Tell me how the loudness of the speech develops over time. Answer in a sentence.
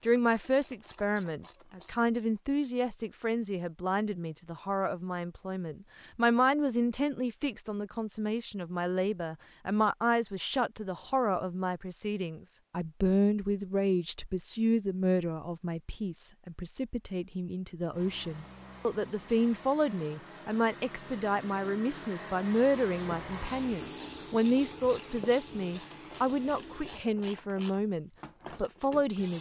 The volume of the speech stays about the same.